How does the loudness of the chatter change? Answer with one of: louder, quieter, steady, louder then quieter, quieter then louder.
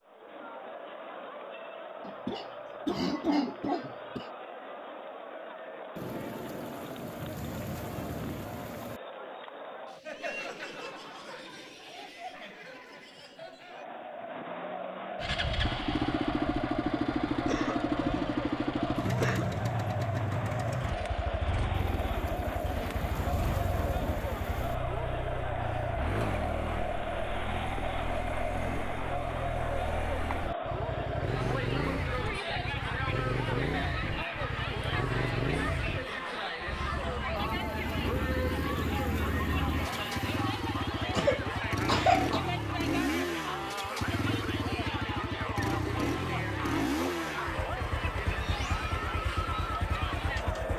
louder.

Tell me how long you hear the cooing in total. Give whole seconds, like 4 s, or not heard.
not heard.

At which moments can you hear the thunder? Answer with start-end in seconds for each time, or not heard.
6.0-9.0, 21.7-24.8, 37.4-40.4.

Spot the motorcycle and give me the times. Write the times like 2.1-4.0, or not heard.
15.2-50.7.